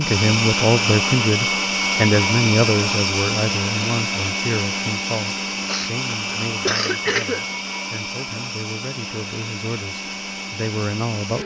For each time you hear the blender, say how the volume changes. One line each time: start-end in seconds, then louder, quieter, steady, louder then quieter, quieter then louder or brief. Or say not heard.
0.0-11.4 quieter.